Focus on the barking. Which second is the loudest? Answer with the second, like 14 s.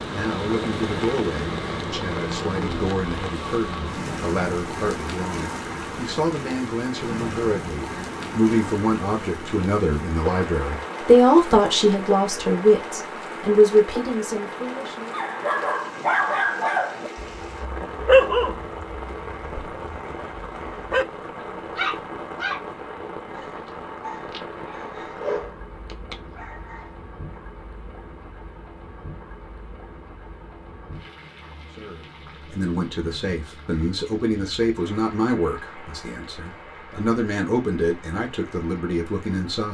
18 s.